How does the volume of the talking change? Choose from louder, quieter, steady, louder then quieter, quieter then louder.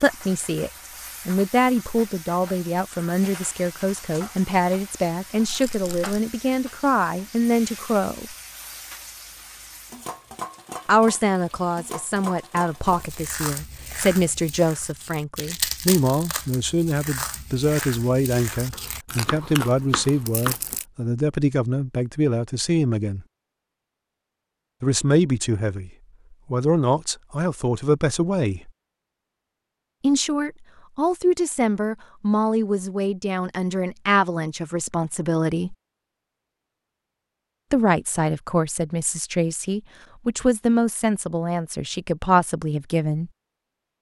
steady.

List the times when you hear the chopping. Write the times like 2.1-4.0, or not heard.
18.7-20.6.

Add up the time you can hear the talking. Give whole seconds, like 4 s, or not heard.
36 s.